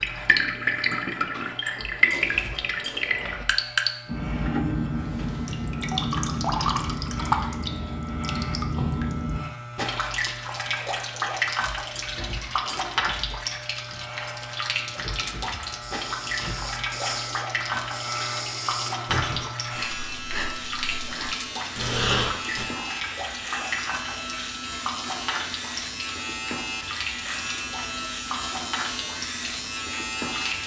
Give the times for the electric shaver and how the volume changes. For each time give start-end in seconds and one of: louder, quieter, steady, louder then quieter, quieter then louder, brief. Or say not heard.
0.0-30.6 louder.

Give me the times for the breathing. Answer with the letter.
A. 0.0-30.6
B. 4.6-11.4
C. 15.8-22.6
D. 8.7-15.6
C.